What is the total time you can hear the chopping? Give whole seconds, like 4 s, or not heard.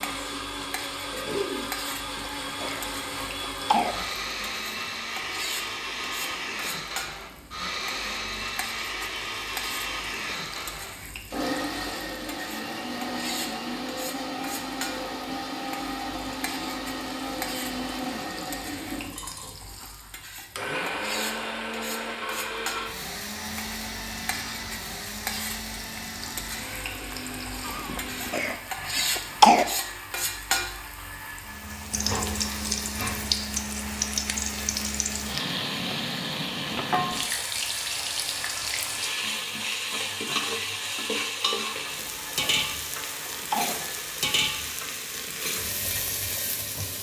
not heard.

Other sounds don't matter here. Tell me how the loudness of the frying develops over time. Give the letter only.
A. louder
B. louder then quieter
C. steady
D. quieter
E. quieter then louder
A.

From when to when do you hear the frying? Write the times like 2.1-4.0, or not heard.
0.0-46.9.